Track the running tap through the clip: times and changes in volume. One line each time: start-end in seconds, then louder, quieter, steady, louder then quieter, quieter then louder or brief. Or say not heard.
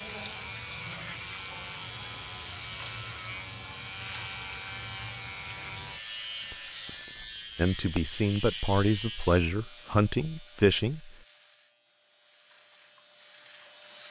0.0-7.1 steady
11.8-14.0 brief.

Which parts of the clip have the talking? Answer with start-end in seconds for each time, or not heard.
7.5-11.2.